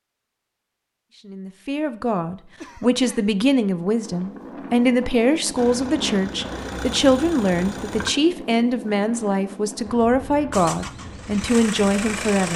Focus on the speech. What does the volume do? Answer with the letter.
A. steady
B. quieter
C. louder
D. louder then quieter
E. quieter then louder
A.